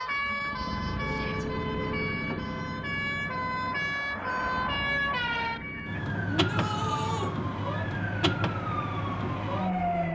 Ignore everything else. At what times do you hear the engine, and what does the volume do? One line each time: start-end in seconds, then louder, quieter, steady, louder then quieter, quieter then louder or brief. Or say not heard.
0.0-10.1 quieter.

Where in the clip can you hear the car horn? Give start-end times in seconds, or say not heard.
0.9-2.1.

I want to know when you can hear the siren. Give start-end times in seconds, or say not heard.
0.0-10.1.